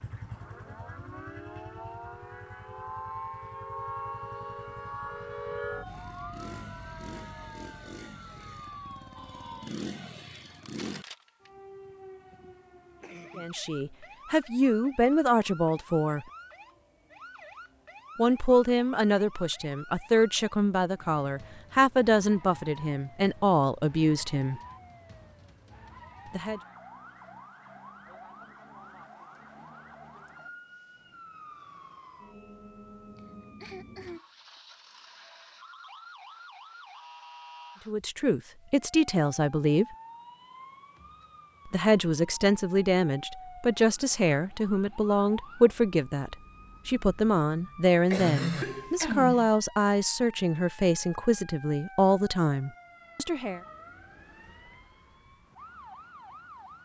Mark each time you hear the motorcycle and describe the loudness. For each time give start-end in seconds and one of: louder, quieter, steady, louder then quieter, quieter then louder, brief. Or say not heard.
0.0-11.1 louder.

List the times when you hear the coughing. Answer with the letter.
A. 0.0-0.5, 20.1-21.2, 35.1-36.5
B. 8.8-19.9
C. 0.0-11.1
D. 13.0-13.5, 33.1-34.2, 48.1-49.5
D.